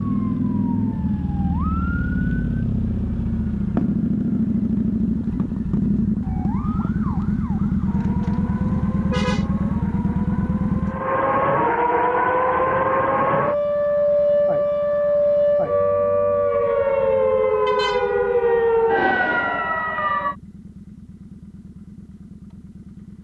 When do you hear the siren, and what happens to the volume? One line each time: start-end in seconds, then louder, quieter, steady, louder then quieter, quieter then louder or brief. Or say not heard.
0.0-2.6 brief
6.2-20.4 louder.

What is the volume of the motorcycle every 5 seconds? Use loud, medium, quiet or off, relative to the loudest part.
loud, loud, medium, quiet, quiet.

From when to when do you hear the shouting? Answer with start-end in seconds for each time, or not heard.
not heard.